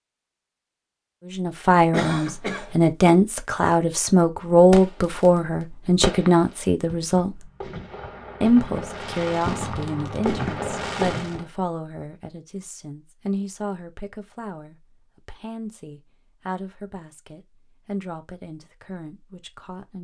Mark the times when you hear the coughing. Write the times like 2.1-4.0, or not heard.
1.9-2.8.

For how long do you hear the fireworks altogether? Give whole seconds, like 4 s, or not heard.
6 s.